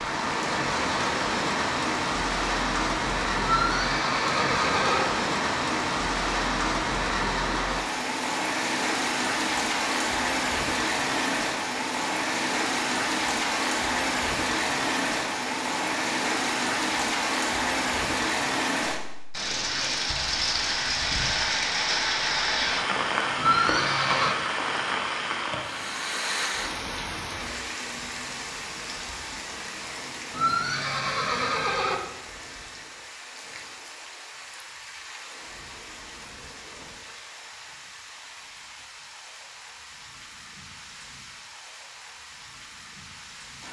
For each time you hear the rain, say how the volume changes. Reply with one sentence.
You can hear the rain from 0.0 to 43.6 s, getting quieter.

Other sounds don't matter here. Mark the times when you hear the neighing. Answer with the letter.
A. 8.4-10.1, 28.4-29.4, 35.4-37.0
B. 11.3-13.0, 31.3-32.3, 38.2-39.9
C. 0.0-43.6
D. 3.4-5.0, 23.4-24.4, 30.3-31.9
D.